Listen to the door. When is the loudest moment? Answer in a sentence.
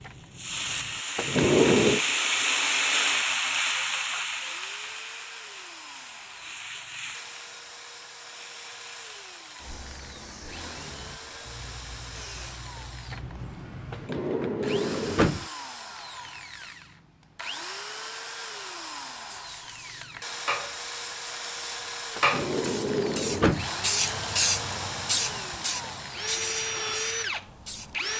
The volume of the door peaks at 2 seconds.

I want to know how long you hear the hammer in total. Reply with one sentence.
You can't hear the hammer here.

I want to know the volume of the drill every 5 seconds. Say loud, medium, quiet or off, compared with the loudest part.
quiet, quiet, medium, medium, loud, loud.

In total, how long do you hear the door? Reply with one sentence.
You can hear the door for 4 seconds altogether.